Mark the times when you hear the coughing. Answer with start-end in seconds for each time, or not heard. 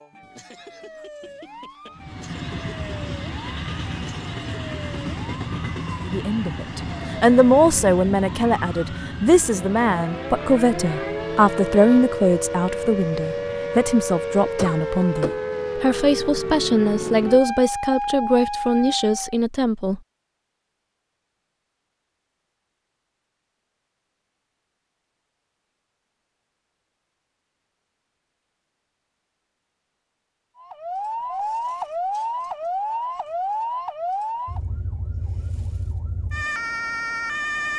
14.6-15.4.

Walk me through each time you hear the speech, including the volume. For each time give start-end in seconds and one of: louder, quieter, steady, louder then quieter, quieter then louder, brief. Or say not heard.
6.0-20.0 steady.